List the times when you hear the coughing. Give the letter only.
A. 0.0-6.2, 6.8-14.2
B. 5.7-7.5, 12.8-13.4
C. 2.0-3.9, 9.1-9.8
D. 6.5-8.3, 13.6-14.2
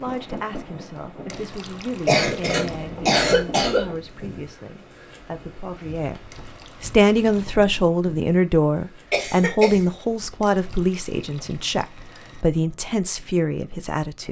C.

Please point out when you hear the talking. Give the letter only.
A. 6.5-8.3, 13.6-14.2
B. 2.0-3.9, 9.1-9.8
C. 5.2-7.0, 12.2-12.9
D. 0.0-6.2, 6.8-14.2
D.